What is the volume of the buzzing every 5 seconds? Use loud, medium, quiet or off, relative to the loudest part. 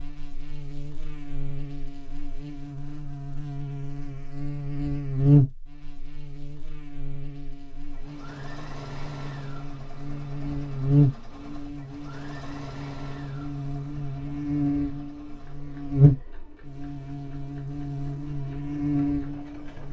medium, loud, loud, loud.